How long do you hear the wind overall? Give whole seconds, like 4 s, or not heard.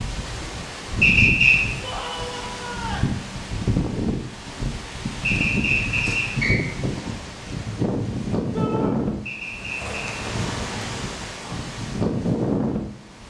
13 s.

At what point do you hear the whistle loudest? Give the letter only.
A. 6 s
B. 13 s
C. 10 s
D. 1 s
D.